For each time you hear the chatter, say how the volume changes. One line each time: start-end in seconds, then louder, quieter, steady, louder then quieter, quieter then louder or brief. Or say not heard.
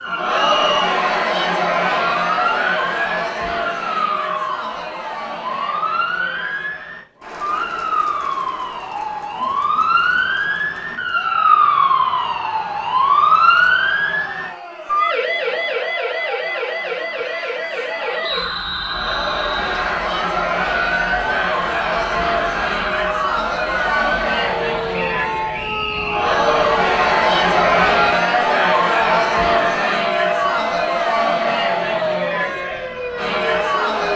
0.0-34.1 quieter then louder.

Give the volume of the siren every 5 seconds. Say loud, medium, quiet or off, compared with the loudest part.
medium, medium, loud, medium, medium, medium, medium.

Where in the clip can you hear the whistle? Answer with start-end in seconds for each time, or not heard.
0.3-1.0, 18.2-19.9, 24.9-26.3.